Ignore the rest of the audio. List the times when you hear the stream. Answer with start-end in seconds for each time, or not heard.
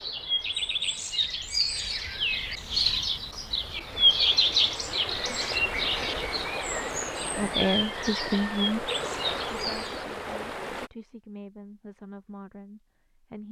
0.0-10.9.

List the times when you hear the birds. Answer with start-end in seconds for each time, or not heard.
0.0-10.1.